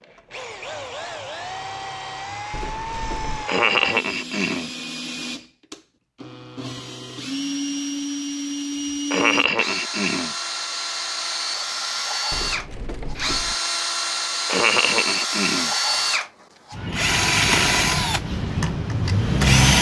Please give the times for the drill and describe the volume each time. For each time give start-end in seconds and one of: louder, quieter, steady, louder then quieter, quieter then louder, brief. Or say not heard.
0.0-19.7 louder.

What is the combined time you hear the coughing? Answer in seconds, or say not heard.
4 s.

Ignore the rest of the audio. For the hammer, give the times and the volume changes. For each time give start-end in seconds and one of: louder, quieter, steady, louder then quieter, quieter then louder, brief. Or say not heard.
not heard.